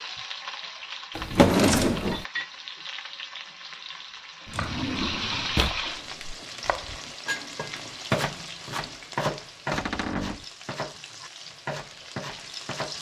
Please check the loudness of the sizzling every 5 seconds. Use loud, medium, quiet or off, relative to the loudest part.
loud, loud, medium.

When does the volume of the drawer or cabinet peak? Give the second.
2 s.